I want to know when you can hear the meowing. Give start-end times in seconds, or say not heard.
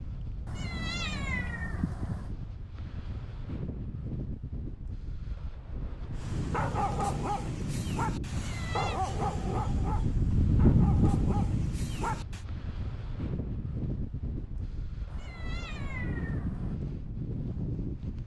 0.5-2.4, 8.3-9.0, 15.1-16.8.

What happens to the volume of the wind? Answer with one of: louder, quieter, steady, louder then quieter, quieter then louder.
louder then quieter.